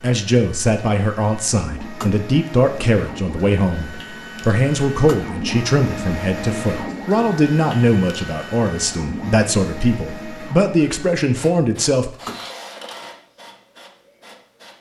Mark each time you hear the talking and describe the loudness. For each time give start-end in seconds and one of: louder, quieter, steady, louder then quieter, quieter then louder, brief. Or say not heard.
0.0-12.2 steady.